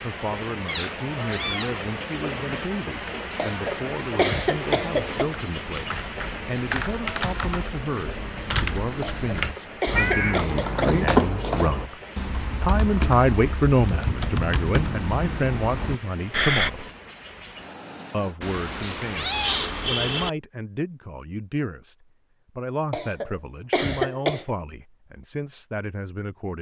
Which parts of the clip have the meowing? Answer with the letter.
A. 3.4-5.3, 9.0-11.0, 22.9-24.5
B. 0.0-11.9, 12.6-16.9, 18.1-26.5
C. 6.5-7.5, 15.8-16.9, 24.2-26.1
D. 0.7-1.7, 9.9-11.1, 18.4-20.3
D.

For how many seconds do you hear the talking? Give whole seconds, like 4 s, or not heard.
25 s.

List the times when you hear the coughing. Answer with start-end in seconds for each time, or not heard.
3.4-5.3, 9.0-11.0, 22.9-24.5.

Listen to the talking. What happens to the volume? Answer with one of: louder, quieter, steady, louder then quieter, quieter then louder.
louder then quieter.